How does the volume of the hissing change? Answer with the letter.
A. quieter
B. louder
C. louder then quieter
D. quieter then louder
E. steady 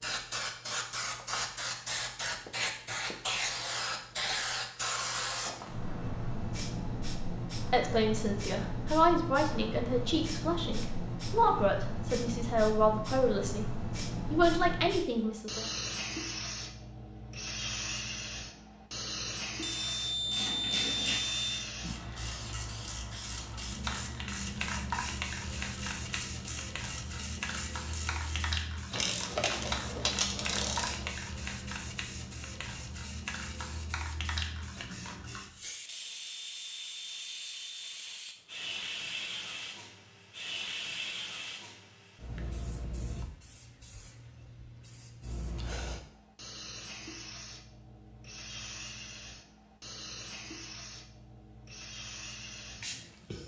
A.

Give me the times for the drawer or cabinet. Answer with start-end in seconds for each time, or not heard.
not heard.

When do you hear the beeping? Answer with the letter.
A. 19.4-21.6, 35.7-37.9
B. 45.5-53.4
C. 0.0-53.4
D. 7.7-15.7
A.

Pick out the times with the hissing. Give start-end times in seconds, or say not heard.
0.0-53.4.